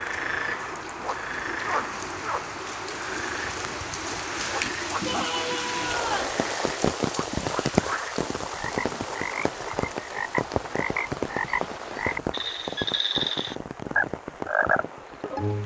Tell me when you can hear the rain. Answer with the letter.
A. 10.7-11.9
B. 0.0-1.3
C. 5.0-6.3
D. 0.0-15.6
D.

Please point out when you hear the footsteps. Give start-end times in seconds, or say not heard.
not heard.